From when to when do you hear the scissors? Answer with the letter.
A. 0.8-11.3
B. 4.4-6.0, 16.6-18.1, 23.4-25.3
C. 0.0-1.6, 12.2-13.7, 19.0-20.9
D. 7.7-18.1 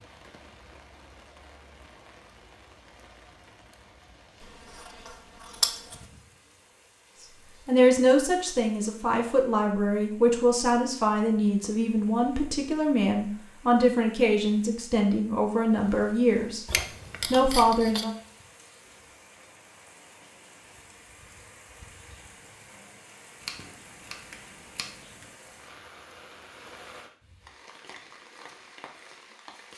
B.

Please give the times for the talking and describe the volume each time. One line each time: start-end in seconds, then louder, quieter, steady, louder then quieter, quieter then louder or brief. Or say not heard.
7.7-18.1 steady.